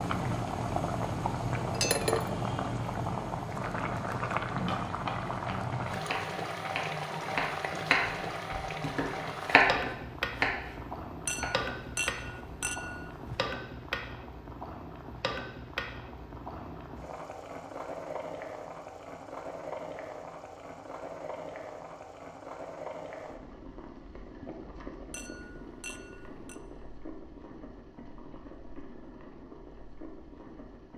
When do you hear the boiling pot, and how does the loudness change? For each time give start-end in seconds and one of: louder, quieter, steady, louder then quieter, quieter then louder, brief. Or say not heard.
0.0-30.9 quieter.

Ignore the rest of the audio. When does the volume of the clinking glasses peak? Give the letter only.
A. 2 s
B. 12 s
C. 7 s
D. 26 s
A.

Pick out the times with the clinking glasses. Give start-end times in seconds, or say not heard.
1.6-2.4, 11.2-13.4, 25.1-26.6.